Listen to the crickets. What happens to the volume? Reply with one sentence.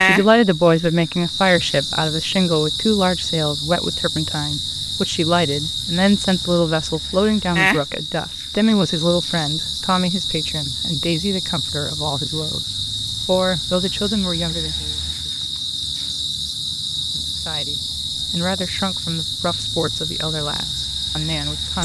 The loudness of the crickets stays about the same.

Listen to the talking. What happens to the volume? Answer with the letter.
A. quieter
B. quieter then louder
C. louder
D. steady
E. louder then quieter
A.